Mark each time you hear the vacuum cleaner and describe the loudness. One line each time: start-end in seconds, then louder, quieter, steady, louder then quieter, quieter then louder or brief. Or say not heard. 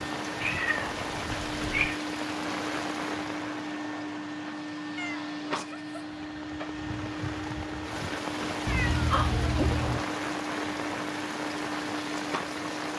0.0-12.9 steady.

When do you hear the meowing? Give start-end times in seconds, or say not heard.
0.4-2.0, 5.0-6.2, 8.7-10.1.